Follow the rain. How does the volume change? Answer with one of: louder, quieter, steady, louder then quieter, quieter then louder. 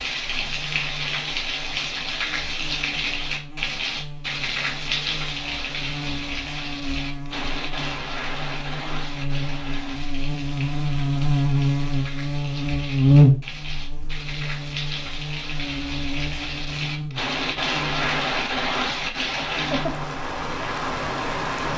quieter then louder.